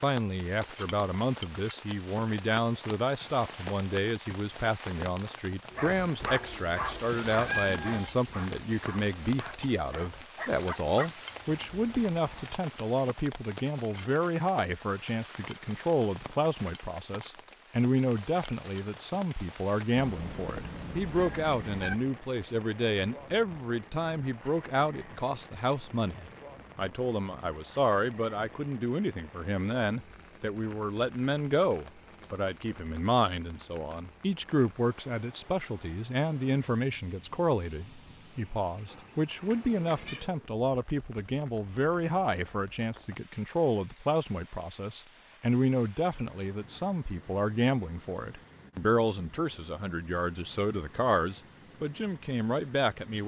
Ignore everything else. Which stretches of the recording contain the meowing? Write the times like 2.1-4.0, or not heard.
7.1-8.1, 19.9-21.9, 38.9-40.5.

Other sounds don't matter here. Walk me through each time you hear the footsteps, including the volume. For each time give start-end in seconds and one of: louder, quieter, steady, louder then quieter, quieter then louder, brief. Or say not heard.
not heard.